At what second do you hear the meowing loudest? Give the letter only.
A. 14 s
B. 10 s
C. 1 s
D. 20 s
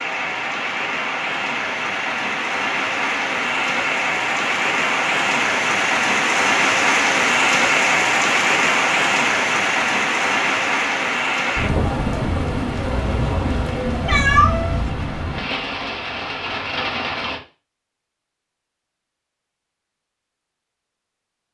A.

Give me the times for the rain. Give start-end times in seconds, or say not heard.
0.0-17.4.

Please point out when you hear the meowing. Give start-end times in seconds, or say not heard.
12.9-14.9.